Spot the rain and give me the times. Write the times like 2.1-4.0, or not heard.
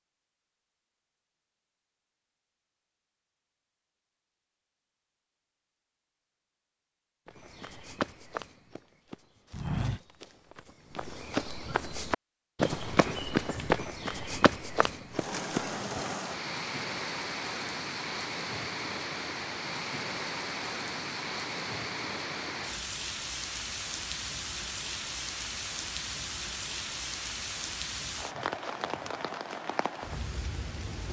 15.1-31.0.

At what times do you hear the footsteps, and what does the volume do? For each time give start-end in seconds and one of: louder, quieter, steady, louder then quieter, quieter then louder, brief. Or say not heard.
7.2-15.7 louder then quieter.